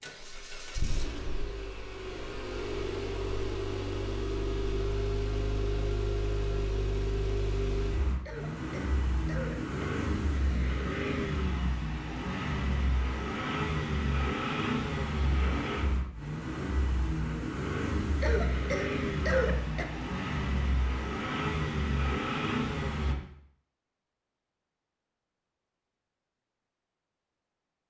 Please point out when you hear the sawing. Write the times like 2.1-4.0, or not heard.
not heard.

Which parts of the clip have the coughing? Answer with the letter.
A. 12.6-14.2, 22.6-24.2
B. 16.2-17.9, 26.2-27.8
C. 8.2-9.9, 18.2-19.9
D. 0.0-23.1
C.